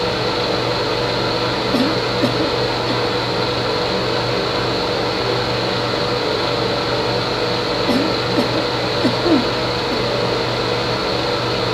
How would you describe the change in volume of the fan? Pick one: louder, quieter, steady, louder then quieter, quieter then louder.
steady.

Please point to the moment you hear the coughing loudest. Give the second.
9 s.